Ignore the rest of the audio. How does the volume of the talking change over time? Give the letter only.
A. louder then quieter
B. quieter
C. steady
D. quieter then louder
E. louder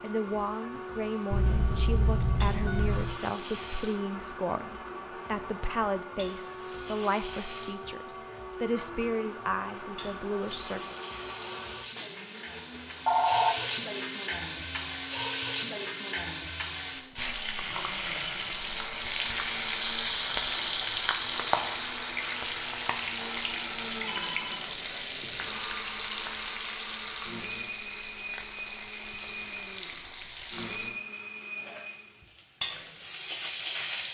C.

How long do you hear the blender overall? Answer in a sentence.
The blender can be heard for 32 seconds in total.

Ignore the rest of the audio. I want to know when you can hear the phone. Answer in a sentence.
You can hear the phone from 1.3 to 3.2 s, from 13.1 to 13.6 s and from 23.4 to 25.6 s.